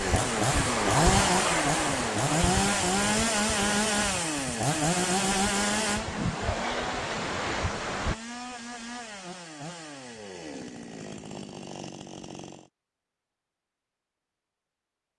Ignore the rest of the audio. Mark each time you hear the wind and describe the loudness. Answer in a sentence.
The wind can be heard from 0.0 to 8.2 s, getting quieter then louder.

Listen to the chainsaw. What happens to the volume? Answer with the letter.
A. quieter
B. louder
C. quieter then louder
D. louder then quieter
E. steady
A.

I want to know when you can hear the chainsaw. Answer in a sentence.
You can hear the chainsaw from 0.0 to 12.7 s.